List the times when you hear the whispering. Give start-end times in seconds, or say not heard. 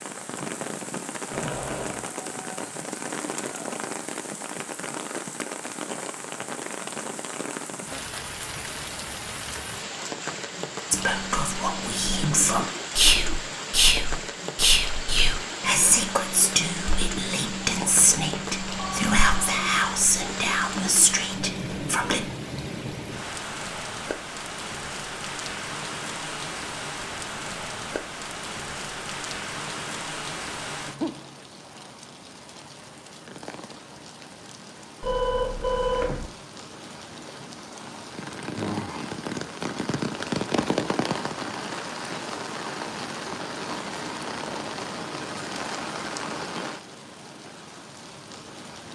10.9-22.3.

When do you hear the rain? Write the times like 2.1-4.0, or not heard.
0.0-48.8.